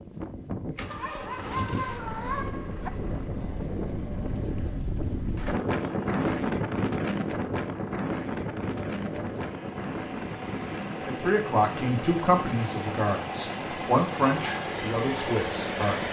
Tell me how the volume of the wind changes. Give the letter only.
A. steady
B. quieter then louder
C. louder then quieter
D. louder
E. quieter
C.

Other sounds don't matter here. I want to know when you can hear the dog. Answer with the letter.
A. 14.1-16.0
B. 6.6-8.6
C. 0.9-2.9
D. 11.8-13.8
C.